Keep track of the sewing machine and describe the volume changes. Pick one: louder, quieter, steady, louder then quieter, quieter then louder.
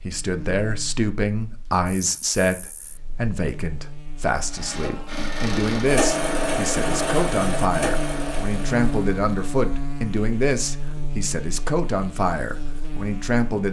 louder then quieter.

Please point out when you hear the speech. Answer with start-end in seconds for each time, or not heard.
0.0-13.6.